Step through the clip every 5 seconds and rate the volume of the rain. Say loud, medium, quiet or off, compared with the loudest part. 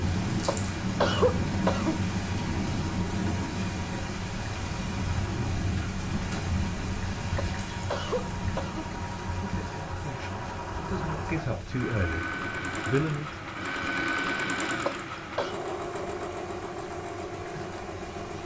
loud, loud, quiet, quiet.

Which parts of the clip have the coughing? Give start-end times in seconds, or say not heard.
0.5-2.0, 7.3-8.9, 14.8-15.6.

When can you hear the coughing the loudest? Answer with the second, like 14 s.
1 s.